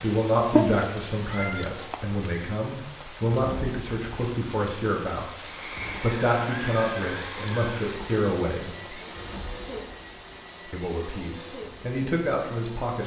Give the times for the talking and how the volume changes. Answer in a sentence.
You can hear the talking from 0.0 to 8.8 s, at a steady volume; and briefly from 10.7 to 13.0 s.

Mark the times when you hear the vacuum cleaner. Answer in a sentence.
You can hear the vacuum cleaner from 5.3 to 13.0 s.